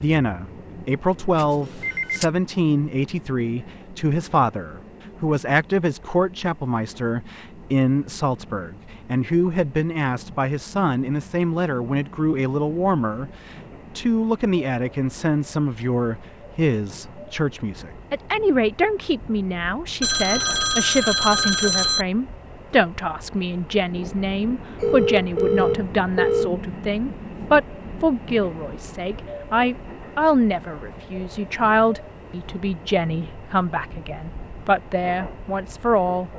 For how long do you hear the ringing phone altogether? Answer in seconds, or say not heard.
5 s.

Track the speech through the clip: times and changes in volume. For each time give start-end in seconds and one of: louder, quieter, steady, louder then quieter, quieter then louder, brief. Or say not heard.
0.0-36.3 steady.